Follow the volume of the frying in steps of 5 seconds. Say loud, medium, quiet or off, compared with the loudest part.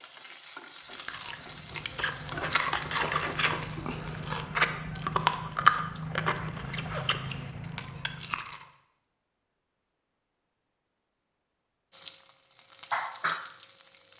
medium, off, loud.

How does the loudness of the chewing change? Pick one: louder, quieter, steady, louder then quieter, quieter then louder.
louder then quieter.